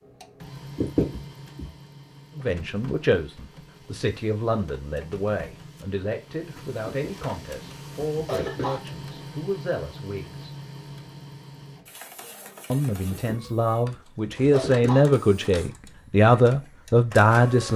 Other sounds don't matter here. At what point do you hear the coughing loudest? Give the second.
1 s.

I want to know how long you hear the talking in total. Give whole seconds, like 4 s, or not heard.
13 s.